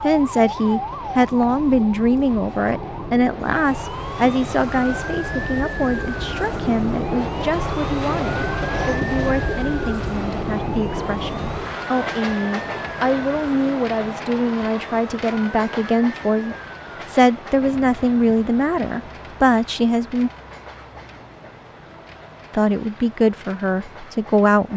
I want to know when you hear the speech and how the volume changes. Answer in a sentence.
You can hear the speech from 0.0 to 20.3 s, getting quieter then louder; and briefly from 22.5 to 24.7 s.